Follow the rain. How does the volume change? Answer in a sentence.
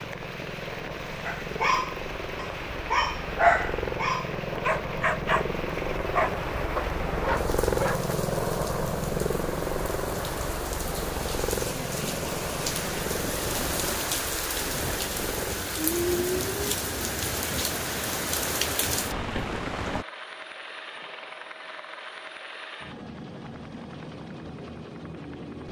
The volume of the rain goes up.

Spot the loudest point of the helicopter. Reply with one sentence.
The volume of the helicopter peaks at 8 seconds.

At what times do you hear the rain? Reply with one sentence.
The rain can be heard from 0.0 to 20.1 s.